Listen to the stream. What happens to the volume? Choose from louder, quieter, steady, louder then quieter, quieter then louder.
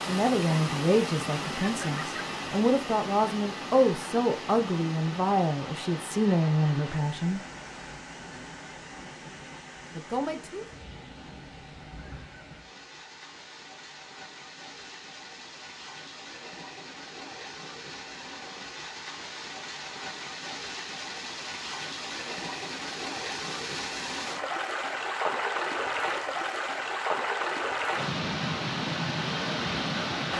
quieter then louder.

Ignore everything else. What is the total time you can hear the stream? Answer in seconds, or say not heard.
30 s.